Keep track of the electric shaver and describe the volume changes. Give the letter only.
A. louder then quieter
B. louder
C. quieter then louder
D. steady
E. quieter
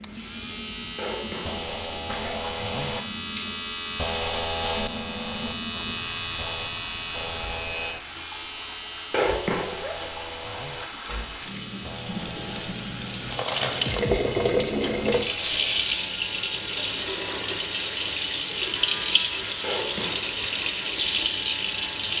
E.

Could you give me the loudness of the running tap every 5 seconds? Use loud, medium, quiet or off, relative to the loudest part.
quiet, quiet, loud, loud, loud.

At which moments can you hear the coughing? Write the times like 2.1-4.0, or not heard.
0.9-2.6, 9.1-10.1, 19.6-20.4.